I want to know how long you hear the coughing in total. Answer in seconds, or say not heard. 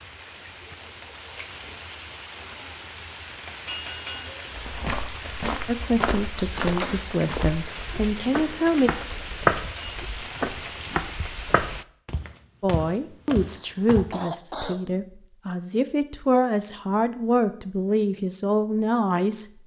2 s.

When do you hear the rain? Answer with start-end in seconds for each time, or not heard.
0.0-11.8.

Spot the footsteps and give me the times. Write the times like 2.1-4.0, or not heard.
4.5-14.1.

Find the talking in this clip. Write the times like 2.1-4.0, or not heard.
5.7-8.9, 12.6-19.4.